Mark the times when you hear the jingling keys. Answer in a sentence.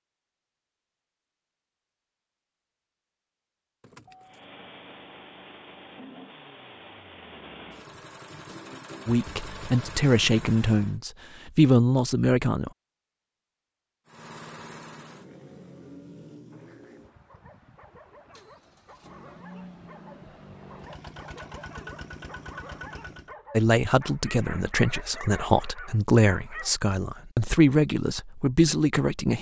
The jingling keys can be heard from 3.8 to 4.5 s.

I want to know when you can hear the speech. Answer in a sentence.
You can hear the speech from 9.1 to 12.7 s and from 23.6 to 29.3 s.